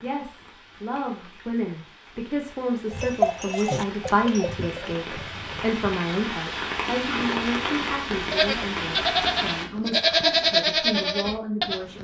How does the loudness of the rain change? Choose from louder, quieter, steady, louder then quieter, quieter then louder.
louder.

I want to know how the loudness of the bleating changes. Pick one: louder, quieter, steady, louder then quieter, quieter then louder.
quieter then louder.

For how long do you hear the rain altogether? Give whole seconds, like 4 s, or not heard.
10 s.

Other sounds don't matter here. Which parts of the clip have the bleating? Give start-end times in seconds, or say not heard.
2.9-6.0, 8.3-11.9.